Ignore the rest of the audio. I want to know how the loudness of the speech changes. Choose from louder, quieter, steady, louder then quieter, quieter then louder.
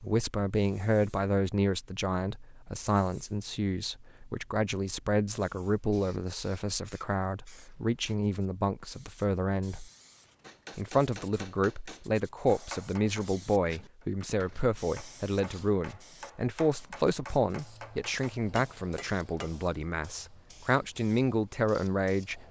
steady.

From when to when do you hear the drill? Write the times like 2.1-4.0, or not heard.
not heard.